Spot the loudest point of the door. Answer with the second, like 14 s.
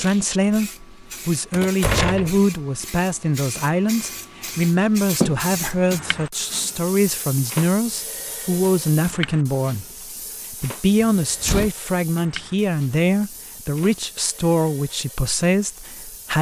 2 s.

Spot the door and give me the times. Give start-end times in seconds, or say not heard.
1.5-2.4, 11.0-11.7.